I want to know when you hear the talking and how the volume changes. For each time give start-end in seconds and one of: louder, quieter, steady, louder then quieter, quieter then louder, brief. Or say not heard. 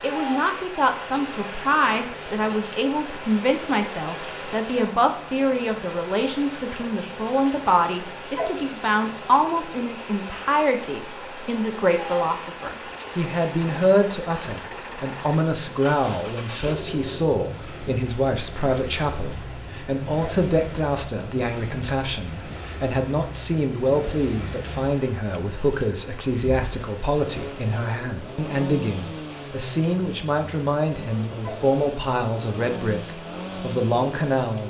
0.0-34.6 steady.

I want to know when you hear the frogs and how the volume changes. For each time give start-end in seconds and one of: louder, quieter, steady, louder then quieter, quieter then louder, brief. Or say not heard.
not heard.